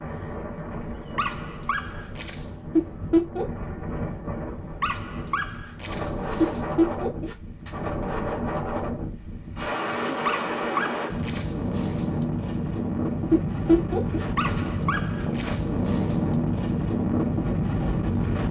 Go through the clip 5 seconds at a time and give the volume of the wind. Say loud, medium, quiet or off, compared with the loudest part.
medium, medium, loud, loud.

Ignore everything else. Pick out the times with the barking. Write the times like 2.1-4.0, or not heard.
1.1-2.5, 4.8-6.7, 10.2-12.2, 14.3-16.4.